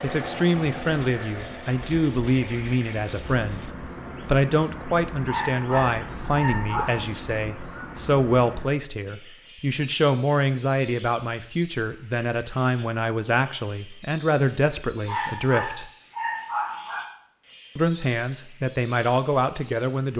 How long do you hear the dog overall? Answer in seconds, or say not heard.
4 s.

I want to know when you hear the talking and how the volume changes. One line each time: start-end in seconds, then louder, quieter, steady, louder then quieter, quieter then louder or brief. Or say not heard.
0.0-15.9 steady
17.8-20.1 brief.